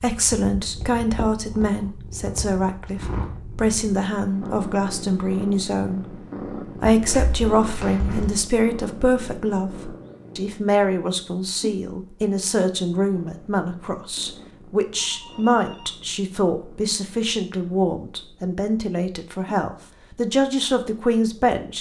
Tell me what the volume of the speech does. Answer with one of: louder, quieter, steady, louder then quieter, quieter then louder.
steady.